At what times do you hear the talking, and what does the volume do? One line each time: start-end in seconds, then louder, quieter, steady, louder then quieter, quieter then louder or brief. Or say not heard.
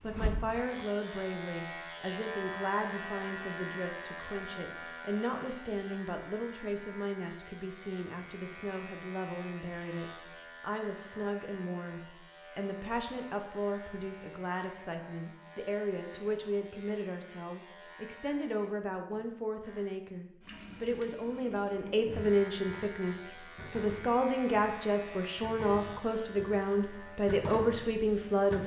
0.0-28.6 louder.